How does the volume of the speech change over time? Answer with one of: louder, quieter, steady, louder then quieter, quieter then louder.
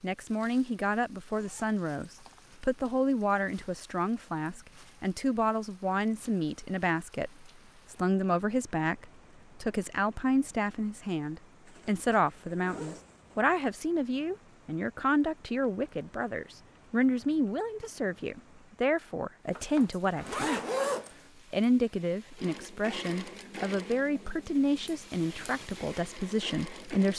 steady.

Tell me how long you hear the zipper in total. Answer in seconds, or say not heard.
5 s.